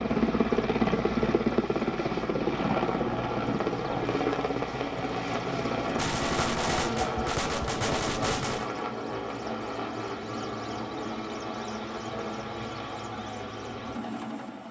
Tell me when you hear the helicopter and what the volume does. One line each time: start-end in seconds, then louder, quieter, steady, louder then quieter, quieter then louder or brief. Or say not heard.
0.0-14.6 quieter.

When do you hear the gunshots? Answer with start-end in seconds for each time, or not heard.
6.0-8.7.